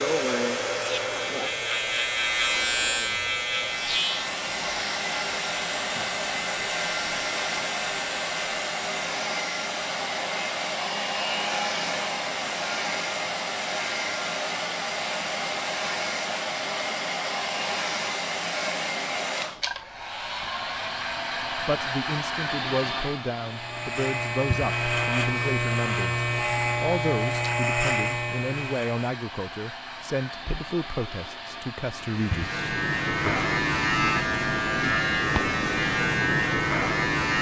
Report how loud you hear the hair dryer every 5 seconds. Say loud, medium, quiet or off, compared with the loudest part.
loud, loud, loud, loud, loud, medium, medium, off.